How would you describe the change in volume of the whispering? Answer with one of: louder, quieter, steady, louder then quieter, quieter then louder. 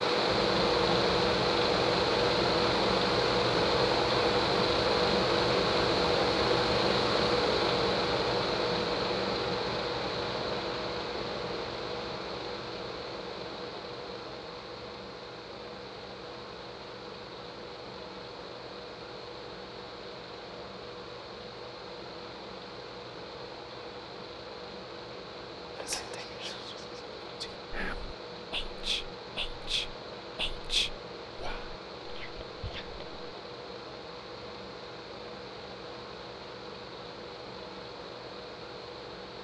louder then quieter.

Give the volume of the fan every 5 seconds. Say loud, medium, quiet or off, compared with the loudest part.
loud, loud, medium, quiet, quiet, quiet, quiet, quiet.